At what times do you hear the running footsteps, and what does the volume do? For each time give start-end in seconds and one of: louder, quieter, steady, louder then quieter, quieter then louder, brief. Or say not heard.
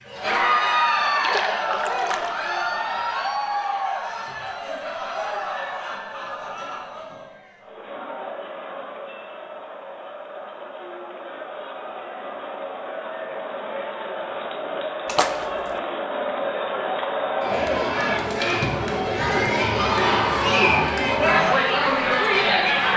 not heard.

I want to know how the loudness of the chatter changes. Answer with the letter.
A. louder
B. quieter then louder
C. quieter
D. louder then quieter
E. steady
B.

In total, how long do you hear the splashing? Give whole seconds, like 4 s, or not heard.
2 s.